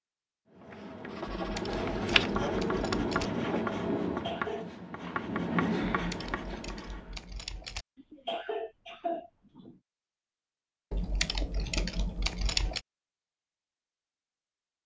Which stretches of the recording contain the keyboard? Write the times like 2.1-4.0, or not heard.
1.4-3.3, 6.0-7.8, 10.9-12.8.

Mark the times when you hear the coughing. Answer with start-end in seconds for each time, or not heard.
4.1-4.7, 8.0-9.8.